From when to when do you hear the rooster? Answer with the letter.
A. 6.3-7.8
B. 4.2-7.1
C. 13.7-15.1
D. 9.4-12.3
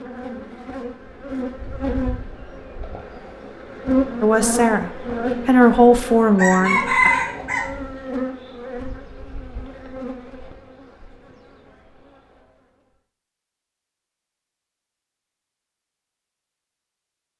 A.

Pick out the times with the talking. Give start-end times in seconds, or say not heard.
4.2-7.1.